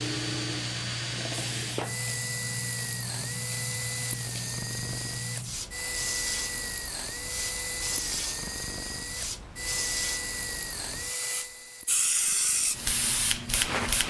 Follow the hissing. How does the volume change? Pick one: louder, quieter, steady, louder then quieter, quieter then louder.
louder.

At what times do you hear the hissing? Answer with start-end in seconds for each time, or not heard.
0.0-14.0.